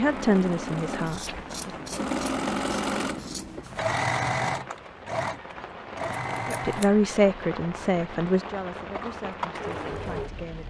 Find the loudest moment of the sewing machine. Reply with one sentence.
The volume of the sewing machine peaks at 4 seconds.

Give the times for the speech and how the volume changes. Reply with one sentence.
You can hear the speech briefly from 0.0 to 1.8 s; and from 6.5 to 10.6 s, getting quieter.